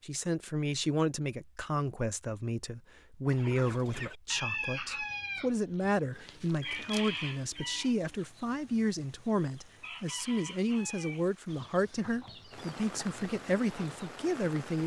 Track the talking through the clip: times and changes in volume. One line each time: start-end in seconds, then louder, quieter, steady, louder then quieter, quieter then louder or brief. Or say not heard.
0.0-14.8 steady.